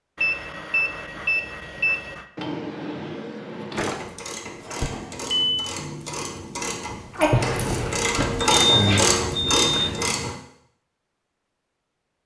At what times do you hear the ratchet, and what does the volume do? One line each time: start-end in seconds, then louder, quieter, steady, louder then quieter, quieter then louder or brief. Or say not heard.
3.7-10.3 louder.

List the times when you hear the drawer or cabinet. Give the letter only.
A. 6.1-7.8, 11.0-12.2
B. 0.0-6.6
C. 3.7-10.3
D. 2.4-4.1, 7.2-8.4
D.